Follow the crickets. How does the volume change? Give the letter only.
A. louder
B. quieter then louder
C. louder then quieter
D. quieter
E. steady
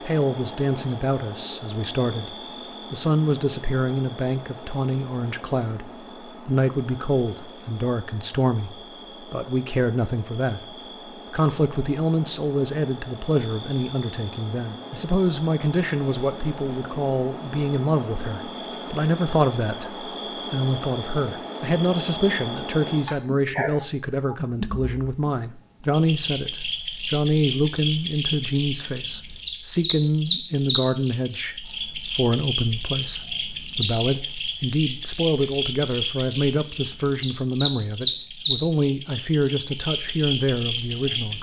A.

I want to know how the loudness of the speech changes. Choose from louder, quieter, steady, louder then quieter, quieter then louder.
steady.